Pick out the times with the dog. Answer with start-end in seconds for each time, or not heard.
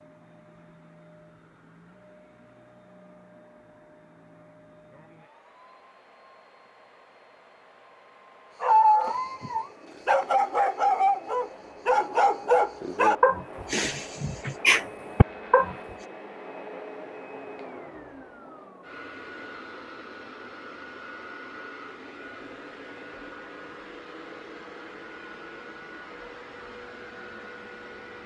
8.6-15.8.